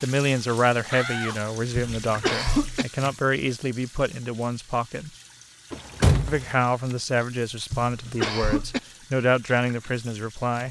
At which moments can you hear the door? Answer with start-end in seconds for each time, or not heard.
0.9-2.1, 5.7-6.5.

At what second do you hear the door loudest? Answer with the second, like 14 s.
6 s.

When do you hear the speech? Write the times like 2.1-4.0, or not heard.
0.0-5.1, 6.2-10.6.